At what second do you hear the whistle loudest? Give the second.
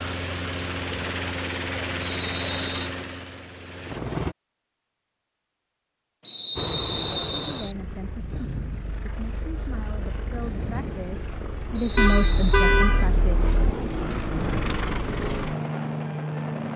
7 s.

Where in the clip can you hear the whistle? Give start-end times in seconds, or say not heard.
2.0-2.9, 6.2-7.8, 11.8-12.7.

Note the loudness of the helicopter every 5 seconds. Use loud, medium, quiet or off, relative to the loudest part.
loud, medium, loud, loud.